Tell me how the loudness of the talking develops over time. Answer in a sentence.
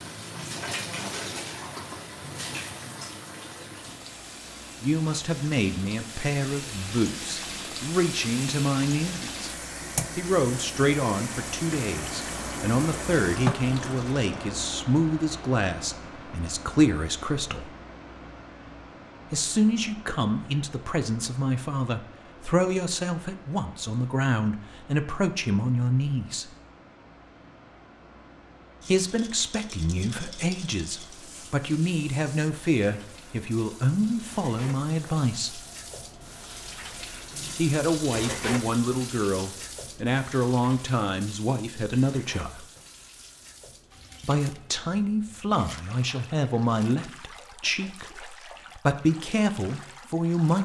The volume of the talking stays about the same.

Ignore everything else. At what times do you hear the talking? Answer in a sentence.
The talking can be heard from 4.8 to 9.5 s, from 10.2 to 17.7 s, from 19.3 to 26.5 s, from 28.9 to 35.6 s, from 37.5 to 42.6 s and from 44.2 to 50.6 s.